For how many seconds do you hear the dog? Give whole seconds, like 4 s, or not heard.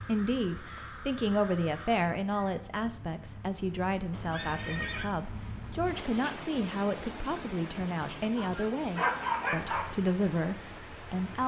2 s.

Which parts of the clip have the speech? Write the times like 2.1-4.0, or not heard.
0.0-11.4.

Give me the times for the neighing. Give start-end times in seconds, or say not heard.
4.1-5.1.